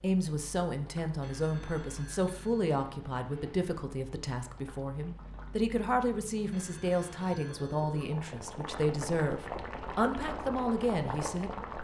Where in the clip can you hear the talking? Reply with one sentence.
The talking can be heard from 0.0 to 11.7 s.